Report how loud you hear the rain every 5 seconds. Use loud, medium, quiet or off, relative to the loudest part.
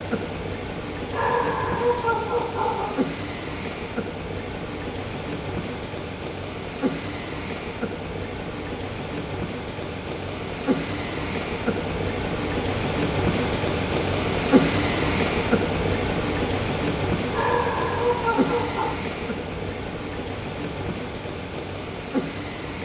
medium, medium, loud, loud, medium.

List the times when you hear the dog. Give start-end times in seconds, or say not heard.
1.1-3.0, 17.3-18.9.